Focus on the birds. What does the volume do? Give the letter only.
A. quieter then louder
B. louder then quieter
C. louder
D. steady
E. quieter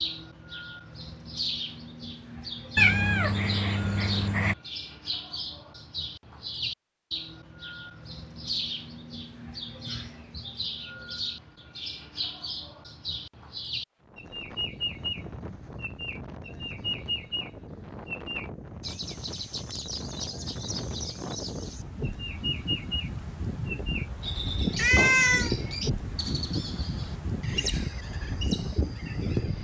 D.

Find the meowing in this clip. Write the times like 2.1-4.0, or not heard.
2.8-4.5, 24.8-25.5.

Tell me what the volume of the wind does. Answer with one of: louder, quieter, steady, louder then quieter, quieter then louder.
louder.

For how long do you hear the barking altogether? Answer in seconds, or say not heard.
not heard.